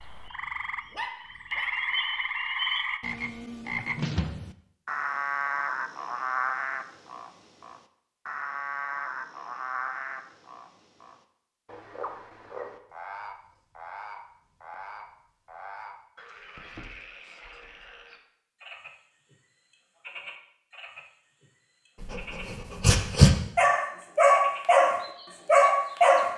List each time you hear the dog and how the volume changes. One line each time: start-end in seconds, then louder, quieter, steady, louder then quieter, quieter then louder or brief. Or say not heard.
0.0-1.7 brief
22.0-26.3 louder.